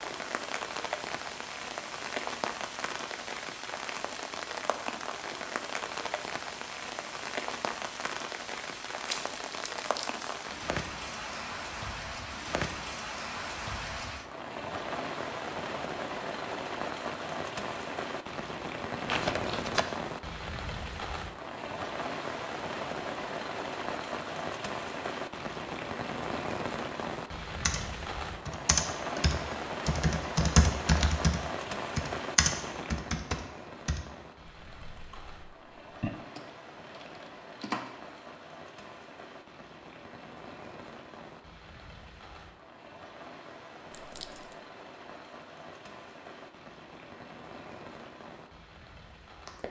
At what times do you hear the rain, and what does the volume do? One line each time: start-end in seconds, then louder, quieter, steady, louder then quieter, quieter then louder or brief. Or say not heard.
0.0-49.6 quieter.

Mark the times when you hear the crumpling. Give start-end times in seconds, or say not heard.
8.9-10.2, 19.1-19.9, 43.9-44.5.